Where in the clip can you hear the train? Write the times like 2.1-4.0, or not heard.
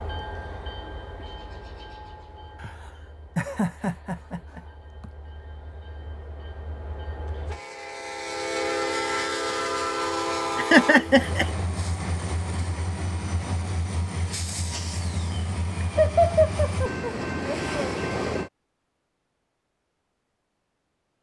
0.0-18.5.